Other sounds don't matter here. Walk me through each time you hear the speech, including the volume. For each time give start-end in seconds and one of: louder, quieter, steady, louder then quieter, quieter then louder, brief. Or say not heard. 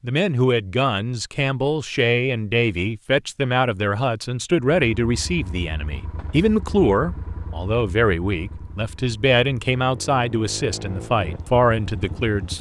0.0-12.5 steady.